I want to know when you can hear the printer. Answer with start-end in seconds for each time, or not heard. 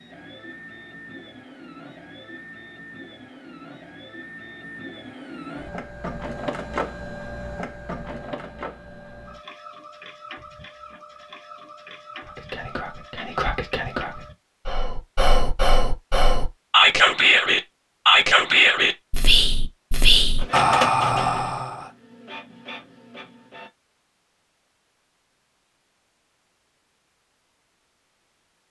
0.0-14.3, 20.2-23.7.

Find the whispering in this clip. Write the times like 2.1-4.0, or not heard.
12.2-21.9.